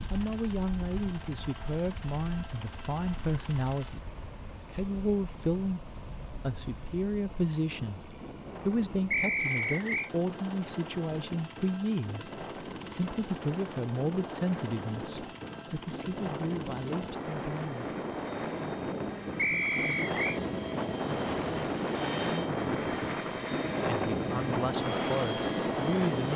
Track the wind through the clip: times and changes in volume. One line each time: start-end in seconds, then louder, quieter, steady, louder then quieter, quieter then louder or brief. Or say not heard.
0.0-26.3 louder.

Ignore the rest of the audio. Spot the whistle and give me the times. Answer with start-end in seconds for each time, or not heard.
9.1-10.1, 19.4-20.4.